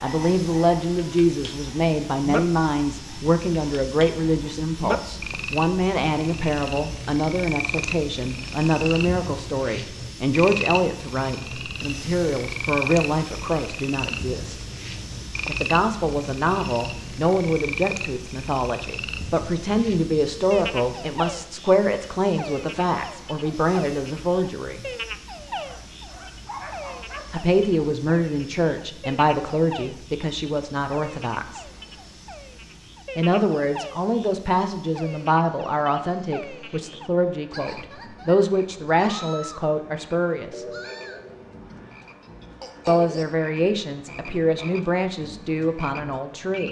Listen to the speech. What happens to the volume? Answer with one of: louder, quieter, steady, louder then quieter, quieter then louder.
steady.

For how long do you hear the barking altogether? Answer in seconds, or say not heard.
2 s.